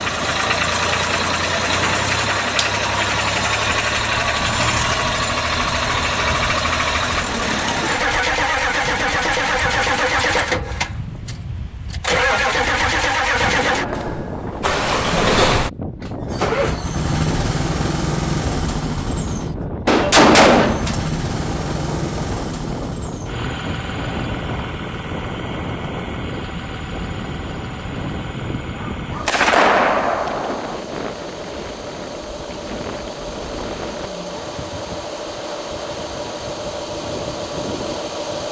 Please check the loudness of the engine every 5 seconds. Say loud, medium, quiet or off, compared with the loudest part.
loud, loud, loud, loud, medium, quiet, quiet, medium.